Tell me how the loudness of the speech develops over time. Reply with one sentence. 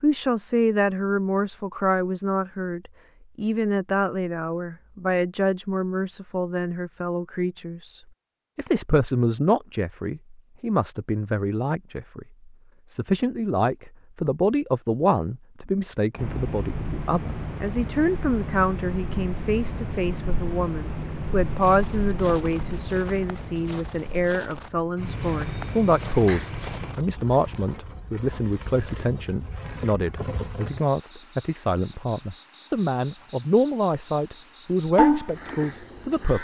The loudness of the speech stays about the same.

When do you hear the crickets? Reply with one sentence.
You can hear the crickets from 16.1 to 36.3 s.